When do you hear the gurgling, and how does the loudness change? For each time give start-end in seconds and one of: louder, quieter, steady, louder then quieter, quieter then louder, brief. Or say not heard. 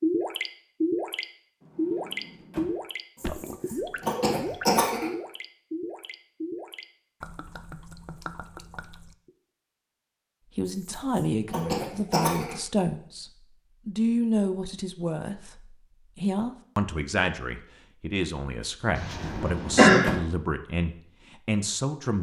0.0-9.3 quieter.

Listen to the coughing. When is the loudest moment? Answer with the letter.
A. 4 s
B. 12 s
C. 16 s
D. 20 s
D.